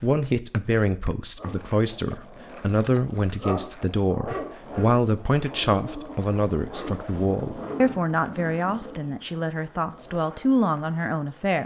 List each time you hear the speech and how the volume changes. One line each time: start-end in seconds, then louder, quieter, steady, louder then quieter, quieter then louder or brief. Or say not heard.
0.0-11.6 steady.